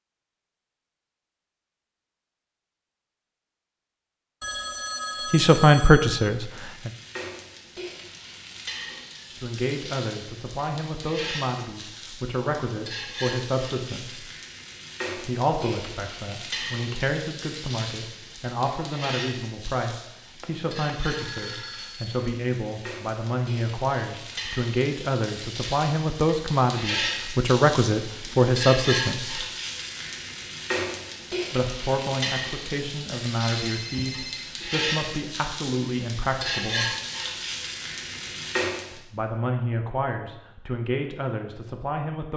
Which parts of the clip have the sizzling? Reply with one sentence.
The sizzling can be heard from 6.2 to 39.0 s.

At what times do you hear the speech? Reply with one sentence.
The speech can be heard from 5.3 to 6.9 s, from 9.3 to 14.2 s, from 15.2 to 29.4 s, from 31.5 to 37.0 s and from 38.9 to 42.3 s.